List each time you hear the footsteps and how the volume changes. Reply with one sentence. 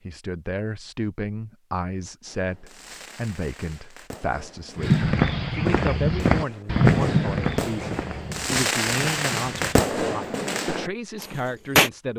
You can hear the footsteps from 4.8 to 9.8 s, getting quieter.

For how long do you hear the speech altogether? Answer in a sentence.
You can hear the speech for 12 seconds altogether.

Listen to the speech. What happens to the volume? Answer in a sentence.
The volume of the speech stays about the same.